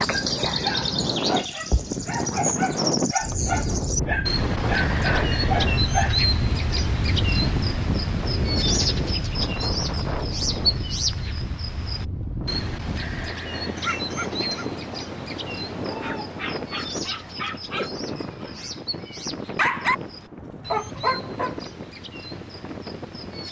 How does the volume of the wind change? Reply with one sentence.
The volume of the wind goes down.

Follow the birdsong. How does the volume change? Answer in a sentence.
The volume of the birdsong goes down.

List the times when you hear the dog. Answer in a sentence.
You can hear the dog from 0.1 to 6.2 s and from 15.9 to 21.7 s.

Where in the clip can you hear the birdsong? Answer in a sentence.
The birdsong can be heard from 0.0 to 23.4 s.